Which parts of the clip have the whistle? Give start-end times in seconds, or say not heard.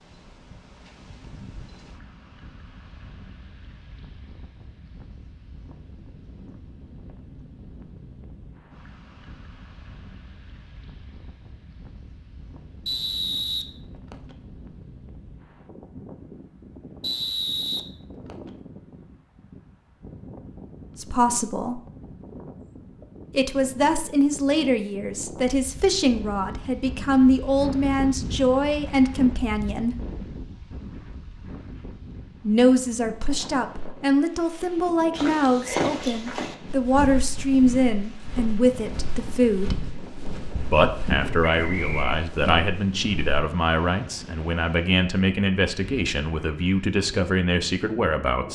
12.8-14.3, 17.0-18.5, 41.6-42.1.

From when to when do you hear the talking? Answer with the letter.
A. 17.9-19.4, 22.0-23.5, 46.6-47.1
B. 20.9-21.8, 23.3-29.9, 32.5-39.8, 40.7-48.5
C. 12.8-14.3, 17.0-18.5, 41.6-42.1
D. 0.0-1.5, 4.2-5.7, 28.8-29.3
B.